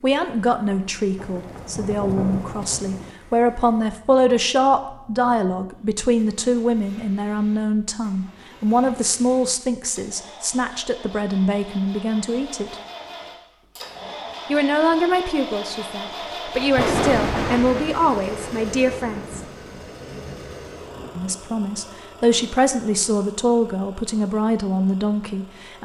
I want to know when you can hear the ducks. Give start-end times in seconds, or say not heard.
not heard.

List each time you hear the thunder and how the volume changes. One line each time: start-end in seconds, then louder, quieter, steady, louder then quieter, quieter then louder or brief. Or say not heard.
1.1-3.1 brief
16.6-21.3 quieter.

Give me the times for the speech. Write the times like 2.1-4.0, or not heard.
0.0-12.8, 14.5-19.4, 21.1-25.8.